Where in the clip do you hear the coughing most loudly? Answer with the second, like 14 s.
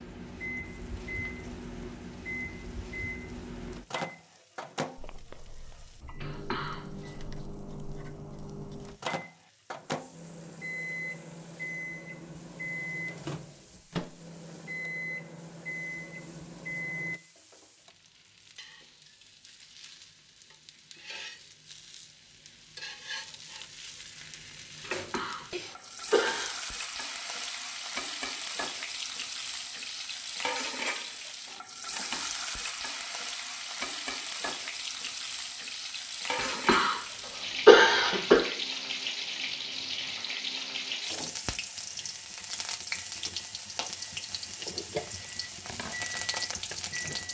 38 s.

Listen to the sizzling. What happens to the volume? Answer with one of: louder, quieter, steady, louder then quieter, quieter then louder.
louder.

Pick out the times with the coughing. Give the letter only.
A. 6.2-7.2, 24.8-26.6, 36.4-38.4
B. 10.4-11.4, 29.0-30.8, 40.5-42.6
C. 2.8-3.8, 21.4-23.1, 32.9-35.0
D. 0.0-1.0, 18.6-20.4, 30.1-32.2
A.